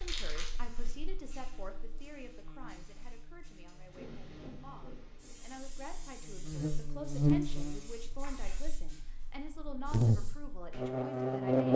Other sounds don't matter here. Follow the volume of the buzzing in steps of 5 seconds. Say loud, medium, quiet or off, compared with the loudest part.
quiet, medium, loud.